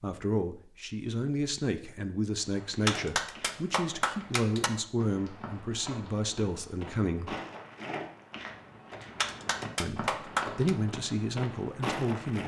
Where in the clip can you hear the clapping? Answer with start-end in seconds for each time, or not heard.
2.6-4.7, 9.0-10.8.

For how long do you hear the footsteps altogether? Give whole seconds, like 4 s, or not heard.
10 s.